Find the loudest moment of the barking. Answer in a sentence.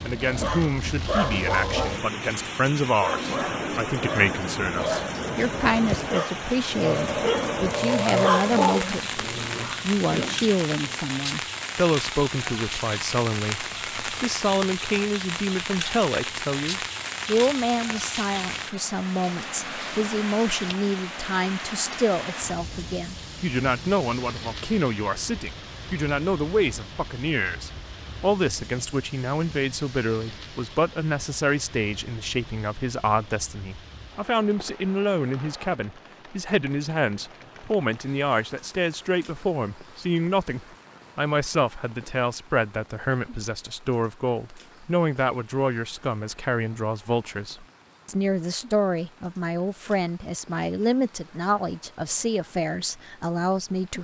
The loudest moment of the barking is at 8 seconds.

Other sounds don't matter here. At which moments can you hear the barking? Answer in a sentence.
You can hear the barking from 0.2 to 11.1 s.